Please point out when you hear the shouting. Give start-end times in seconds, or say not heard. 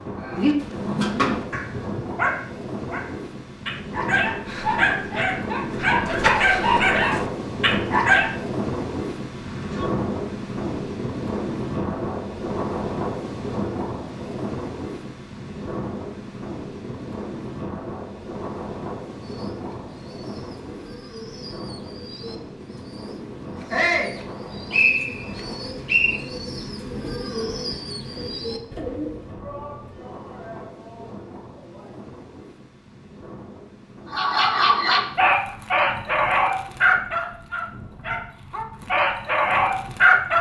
9.4-9.9, 23.7-24.1, 29.4-31.9.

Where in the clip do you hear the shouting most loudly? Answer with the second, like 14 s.
24 s.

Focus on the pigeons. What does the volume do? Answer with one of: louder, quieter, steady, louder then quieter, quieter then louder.
louder.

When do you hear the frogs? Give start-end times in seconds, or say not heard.
not heard.